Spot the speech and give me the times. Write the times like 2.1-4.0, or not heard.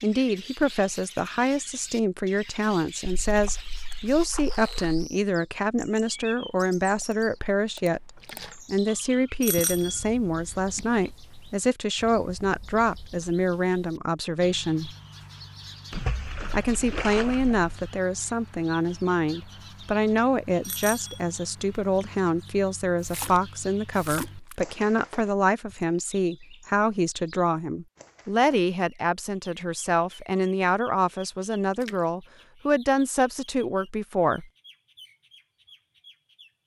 0.0-14.9, 16.5-34.5.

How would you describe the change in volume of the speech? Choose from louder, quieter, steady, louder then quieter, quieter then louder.
steady.